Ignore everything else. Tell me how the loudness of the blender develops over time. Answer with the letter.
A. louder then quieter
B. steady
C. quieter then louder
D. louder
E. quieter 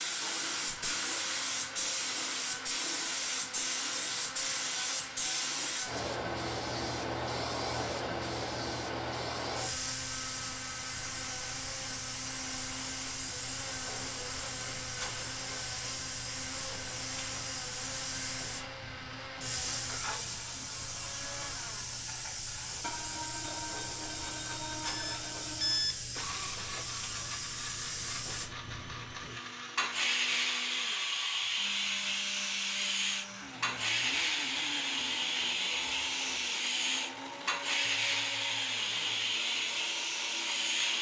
B.